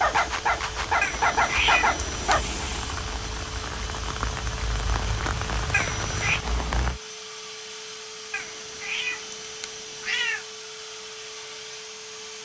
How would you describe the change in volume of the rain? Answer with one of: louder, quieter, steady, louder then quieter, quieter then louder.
louder.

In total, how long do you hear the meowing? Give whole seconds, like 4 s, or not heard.
4 s.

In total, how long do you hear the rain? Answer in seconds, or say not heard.
7 s.